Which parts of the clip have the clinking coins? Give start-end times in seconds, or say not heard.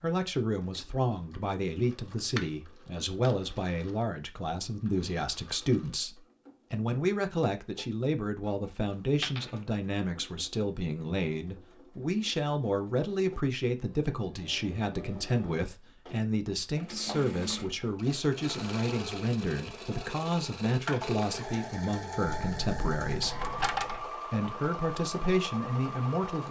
2.4-3.4, 9.2-9.6, 22.3-24.1.